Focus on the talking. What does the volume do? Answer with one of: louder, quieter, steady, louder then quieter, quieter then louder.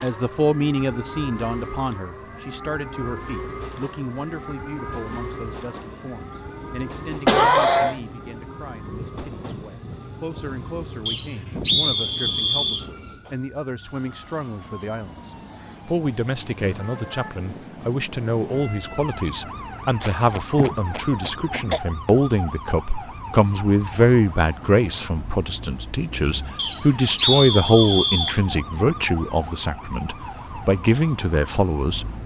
quieter then louder.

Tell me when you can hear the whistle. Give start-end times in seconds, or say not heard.
11.1-12.8, 26.6-28.4.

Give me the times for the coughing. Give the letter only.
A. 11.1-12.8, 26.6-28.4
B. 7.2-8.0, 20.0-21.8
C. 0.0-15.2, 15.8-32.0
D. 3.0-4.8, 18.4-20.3
B.